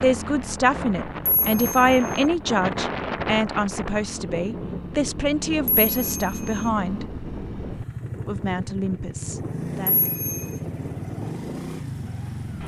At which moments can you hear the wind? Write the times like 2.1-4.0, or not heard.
0.0-12.6.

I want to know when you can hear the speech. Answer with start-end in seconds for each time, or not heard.
0.0-7.0, 8.2-9.9.